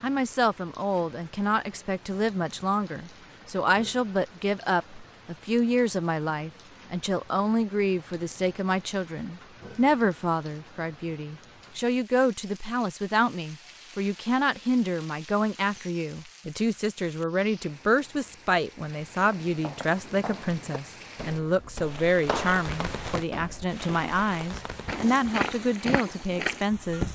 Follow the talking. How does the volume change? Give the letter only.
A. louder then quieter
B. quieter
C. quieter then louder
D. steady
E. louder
D.